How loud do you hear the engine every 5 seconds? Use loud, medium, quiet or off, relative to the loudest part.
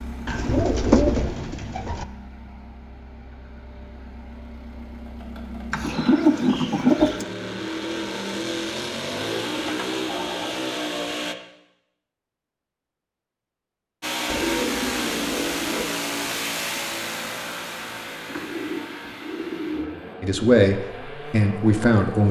quiet, loud, loud, loud, medium.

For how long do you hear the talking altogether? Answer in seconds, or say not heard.
2 s.